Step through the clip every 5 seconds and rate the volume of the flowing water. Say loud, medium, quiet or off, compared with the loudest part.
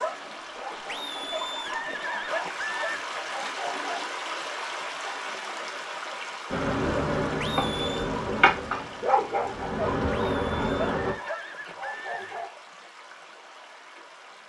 loud, loud, medium.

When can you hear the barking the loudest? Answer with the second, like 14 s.
9 s.